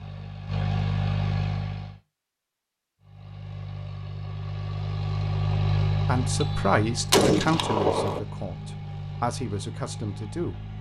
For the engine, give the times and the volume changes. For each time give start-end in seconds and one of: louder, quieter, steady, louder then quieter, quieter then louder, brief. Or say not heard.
0.0-2.0 brief
3.0-10.7 louder then quieter.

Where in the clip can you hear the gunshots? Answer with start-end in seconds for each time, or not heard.
6.4-8.2.